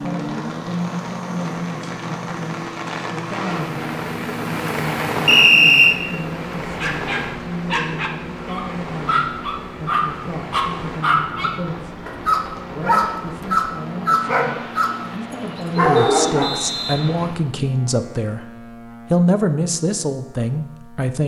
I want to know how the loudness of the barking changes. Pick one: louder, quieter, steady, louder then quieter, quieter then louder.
louder.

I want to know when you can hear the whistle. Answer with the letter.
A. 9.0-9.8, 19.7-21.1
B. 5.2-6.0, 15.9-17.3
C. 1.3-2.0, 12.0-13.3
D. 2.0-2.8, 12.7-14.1
B.